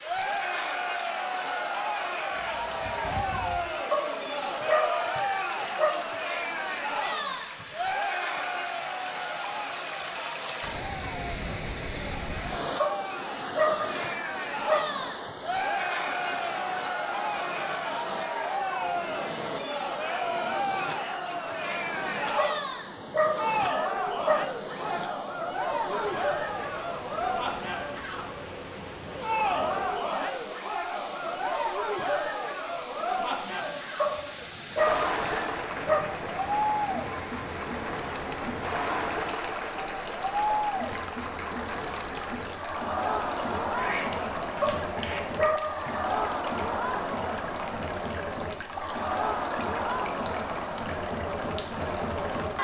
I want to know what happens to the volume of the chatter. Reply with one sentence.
The loudness of the chatter stays about the same.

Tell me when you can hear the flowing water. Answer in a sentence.
The flowing water can be heard from 0.0 to 52.5 s.